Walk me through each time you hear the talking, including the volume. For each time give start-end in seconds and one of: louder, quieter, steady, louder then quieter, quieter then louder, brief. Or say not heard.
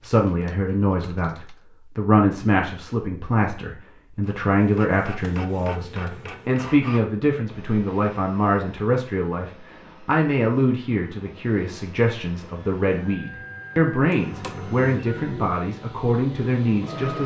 0.0-17.2 steady.